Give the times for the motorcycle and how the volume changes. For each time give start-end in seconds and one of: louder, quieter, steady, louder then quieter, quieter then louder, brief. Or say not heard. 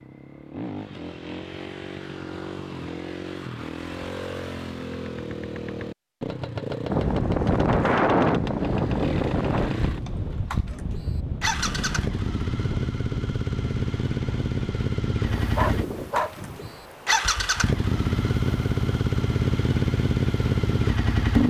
0.0-21.4 louder.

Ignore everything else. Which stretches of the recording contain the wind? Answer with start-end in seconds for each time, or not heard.
6.9-21.4.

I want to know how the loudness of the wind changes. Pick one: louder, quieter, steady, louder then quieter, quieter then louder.
quieter.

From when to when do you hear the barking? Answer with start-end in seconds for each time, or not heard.
15.6-16.4.